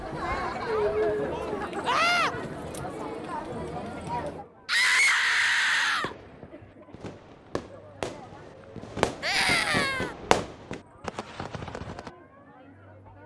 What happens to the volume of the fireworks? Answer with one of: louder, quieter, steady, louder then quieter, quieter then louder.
louder then quieter.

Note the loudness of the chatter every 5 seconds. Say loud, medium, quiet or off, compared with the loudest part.
loud, quiet, quiet.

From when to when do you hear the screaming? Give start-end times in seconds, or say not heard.
1.9-2.4, 4.7-6.2, 9.2-10.2.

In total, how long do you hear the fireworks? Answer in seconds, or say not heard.
6 s.